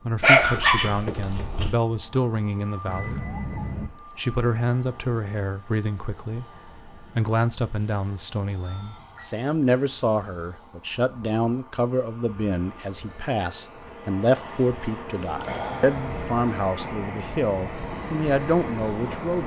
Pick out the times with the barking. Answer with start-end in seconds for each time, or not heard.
0.2-1.7.